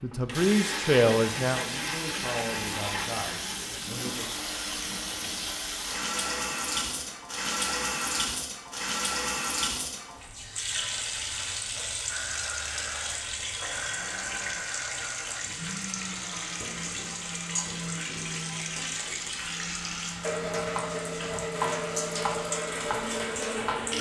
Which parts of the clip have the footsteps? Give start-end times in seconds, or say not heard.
not heard.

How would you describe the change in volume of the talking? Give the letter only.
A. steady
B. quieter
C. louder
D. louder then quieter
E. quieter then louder
B.